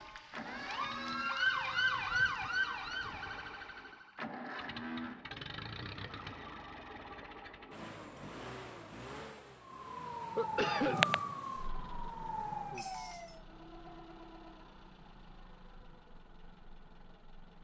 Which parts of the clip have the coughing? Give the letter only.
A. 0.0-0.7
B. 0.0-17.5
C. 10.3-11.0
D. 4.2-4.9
C.